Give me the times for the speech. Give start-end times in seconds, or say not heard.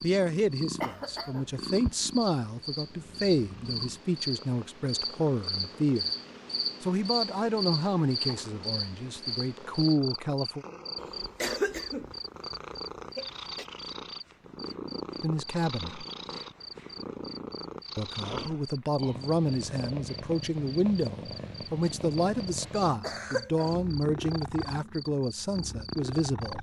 0.0-6.1, 6.8-10.7, 15.2-16.1, 17.9-26.5.